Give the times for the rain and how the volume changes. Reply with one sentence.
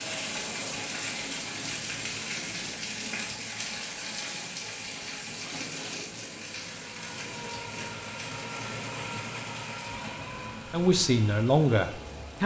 You can hear the rain from 0.0 to 12.4 s, getting quieter.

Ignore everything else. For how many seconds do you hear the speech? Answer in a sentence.
The speech can be heard for 2 seconds in total.